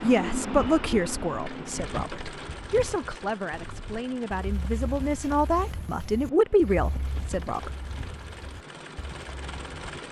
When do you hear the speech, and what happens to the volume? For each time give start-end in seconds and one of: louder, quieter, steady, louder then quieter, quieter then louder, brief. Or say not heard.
0.0-7.7 quieter then louder.